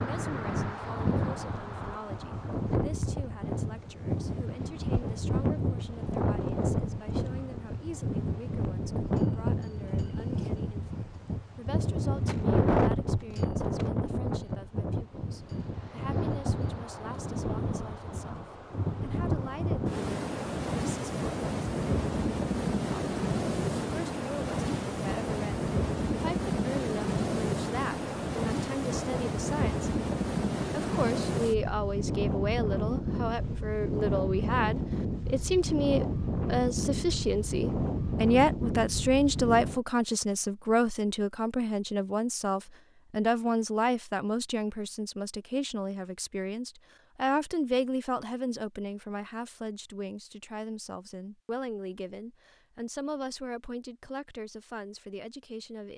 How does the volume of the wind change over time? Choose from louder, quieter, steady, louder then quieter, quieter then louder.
steady.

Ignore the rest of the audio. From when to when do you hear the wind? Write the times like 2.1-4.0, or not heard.
0.0-39.8.